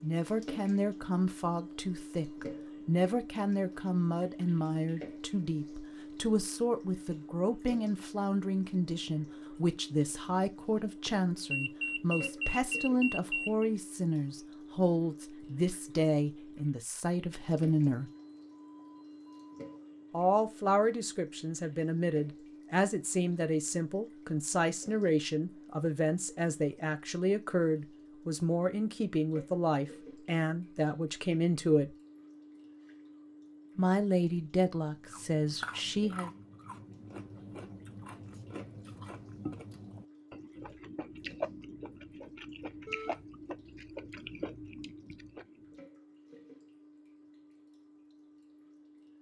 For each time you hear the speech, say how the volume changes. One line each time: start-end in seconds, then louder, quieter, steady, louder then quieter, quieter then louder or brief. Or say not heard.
0.0-18.1 steady
20.1-31.9 steady
33.8-36.3 brief.